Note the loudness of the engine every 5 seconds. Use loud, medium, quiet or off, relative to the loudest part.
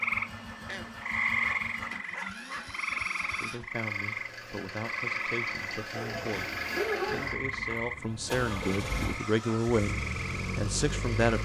medium, loud, loud.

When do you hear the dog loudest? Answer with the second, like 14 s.
7 s.